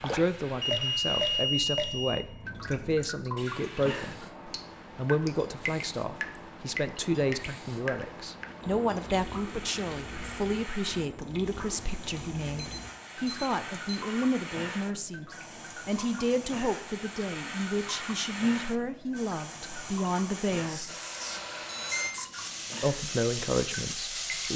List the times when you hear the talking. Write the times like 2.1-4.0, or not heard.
0.0-4.2, 5.0-20.9, 22.8-24.5.